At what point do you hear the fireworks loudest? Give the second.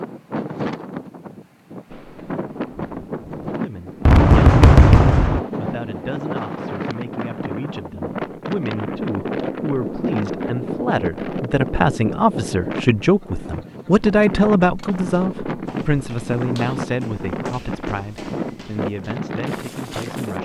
5 s.